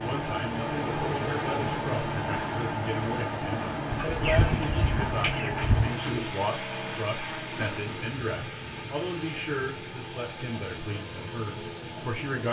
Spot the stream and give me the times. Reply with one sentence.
You can hear the stream from 0.0 to 12.4 s.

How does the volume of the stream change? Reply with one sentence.
The loudness of the stream goes down.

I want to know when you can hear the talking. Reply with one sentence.
You can hear the talking from 0.0 to 12.4 s.